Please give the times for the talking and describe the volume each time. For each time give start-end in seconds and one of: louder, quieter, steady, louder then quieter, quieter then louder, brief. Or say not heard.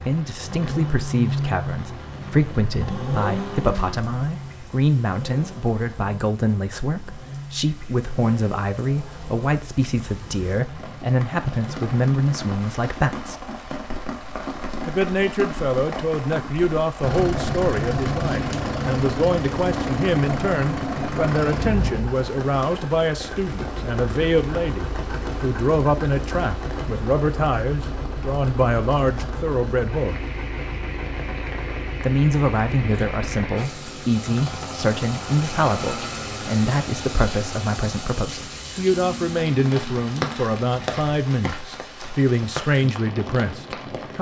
0.0-13.3 steady
14.8-30.1 steady
32.0-44.1 steady.